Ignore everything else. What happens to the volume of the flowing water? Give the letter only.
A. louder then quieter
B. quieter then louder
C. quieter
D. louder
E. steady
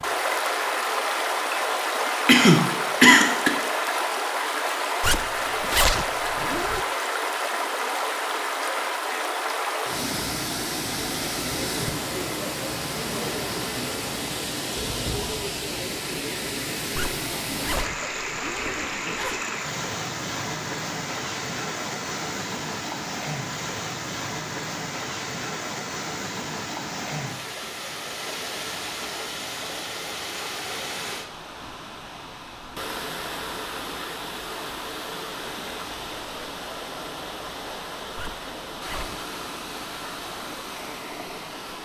C.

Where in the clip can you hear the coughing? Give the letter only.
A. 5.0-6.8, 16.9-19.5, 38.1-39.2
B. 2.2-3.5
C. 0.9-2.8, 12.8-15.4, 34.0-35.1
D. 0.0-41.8
B.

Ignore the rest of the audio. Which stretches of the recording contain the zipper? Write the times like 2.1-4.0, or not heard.
5.0-6.8, 16.9-19.5, 38.1-39.2.